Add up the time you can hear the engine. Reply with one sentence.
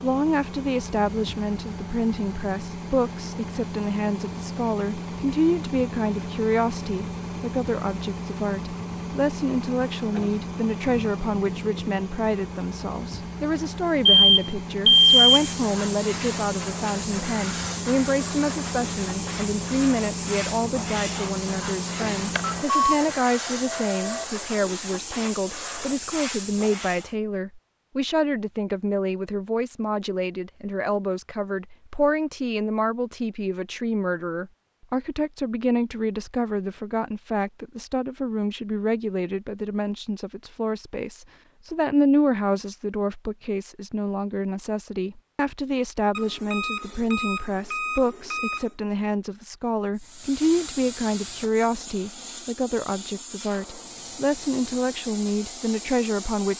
The engine can be heard for 23 seconds in total.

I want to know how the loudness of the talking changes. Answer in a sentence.
The volume of the talking stays about the same.